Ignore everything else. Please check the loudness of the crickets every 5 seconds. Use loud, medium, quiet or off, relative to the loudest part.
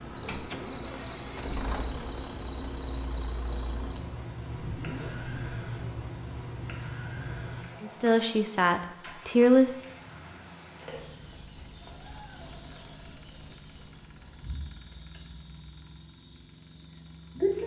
medium, medium, loud, medium.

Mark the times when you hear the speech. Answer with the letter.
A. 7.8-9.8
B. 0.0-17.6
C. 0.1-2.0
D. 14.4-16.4
A.